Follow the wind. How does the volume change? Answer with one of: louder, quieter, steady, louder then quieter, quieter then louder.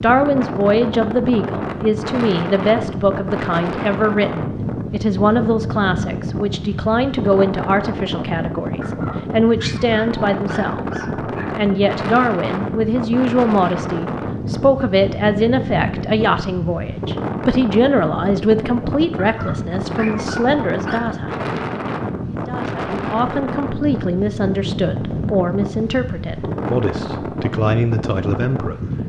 steady.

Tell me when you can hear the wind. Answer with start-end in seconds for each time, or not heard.
0.0-29.0.